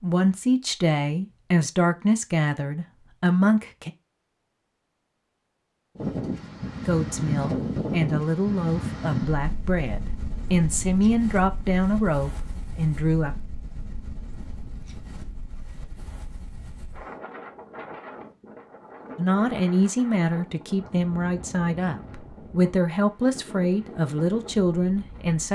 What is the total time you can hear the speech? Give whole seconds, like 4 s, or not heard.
17 s.